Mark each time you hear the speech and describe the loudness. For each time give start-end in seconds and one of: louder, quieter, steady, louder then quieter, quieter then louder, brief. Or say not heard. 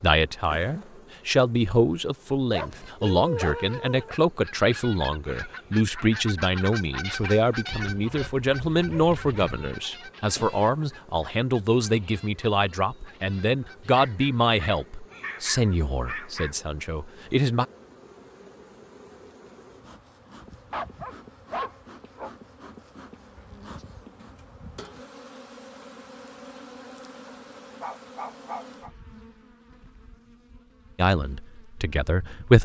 0.0-17.6 steady
30.9-32.6 brief.